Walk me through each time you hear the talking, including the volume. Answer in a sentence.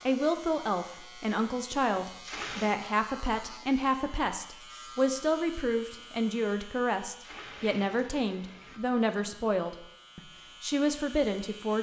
The talking can be heard from 0.1 to 11.7 s, at a steady volume.